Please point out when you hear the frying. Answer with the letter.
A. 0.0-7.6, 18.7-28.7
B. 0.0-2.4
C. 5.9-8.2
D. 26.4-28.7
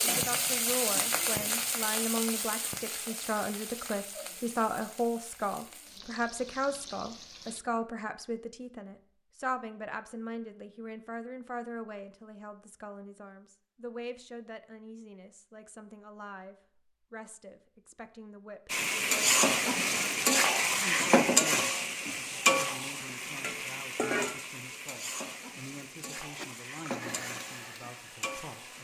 A.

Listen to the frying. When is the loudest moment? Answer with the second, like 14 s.
21 s.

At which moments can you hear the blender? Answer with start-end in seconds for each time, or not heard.
26.4-28.7.